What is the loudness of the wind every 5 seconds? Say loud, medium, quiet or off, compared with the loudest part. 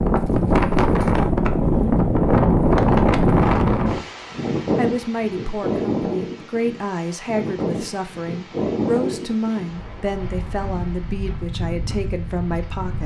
loud, medium, quiet.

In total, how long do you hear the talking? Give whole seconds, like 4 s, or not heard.
8 s.